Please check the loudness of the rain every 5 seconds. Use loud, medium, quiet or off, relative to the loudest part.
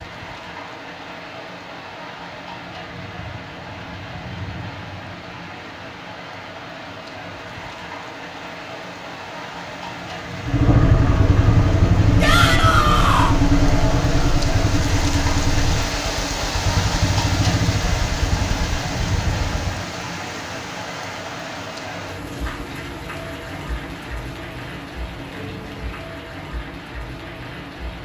medium, medium, loud, loud, medium, medium.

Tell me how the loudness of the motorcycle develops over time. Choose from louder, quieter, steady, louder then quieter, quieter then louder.
quieter.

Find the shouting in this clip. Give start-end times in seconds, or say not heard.
12.2-13.3.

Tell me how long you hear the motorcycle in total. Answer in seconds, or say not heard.
9 s.